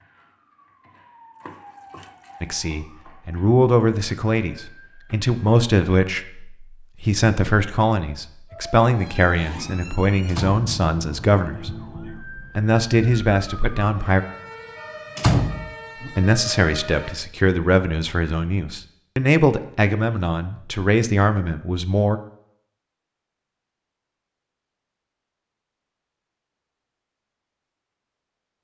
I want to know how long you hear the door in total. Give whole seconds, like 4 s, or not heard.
2 s.